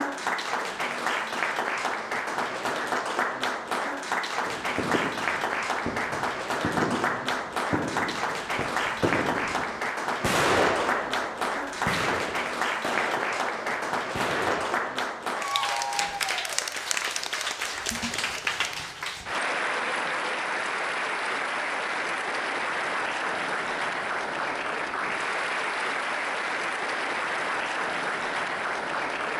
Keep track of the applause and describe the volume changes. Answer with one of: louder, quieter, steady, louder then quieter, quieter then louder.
steady.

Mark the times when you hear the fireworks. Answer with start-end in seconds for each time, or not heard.
4.5-14.9.